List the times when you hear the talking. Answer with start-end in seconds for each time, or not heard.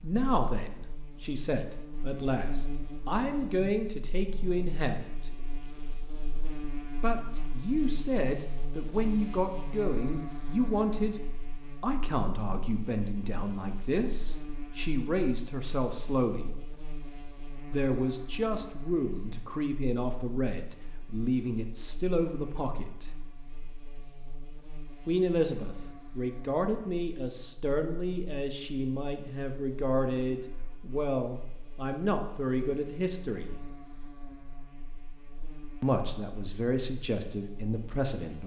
0.0-5.3, 7.0-11.2, 11.8-16.5, 17.7-23.1, 25.1-33.5, 35.8-38.4.